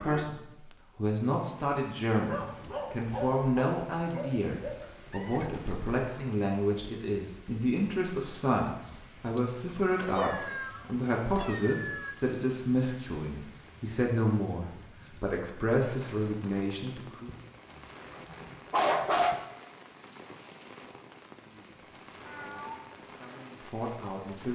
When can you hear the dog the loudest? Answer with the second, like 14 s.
19 s.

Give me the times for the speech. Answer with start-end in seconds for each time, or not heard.
0.0-17.3, 21.4-24.5.